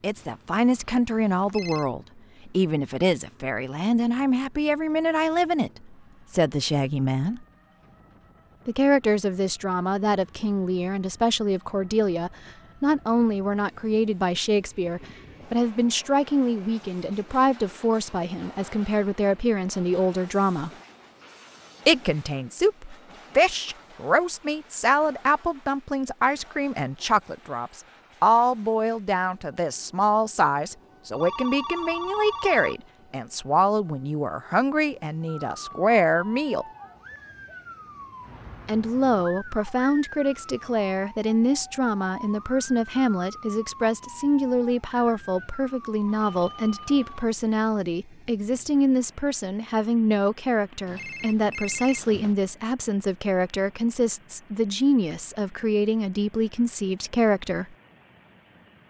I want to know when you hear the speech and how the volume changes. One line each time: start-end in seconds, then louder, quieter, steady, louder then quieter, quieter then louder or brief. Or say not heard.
0.0-7.5 steady
8.7-20.7 steady
21.9-36.6 steady
38.6-57.6 steady.